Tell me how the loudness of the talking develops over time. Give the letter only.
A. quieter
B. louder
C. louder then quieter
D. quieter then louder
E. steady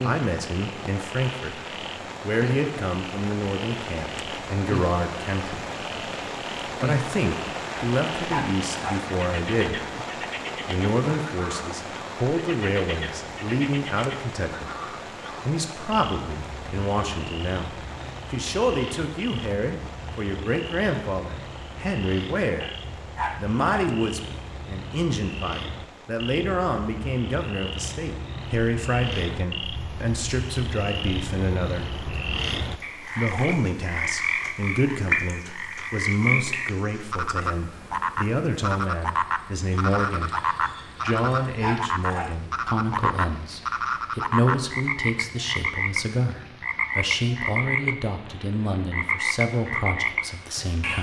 E.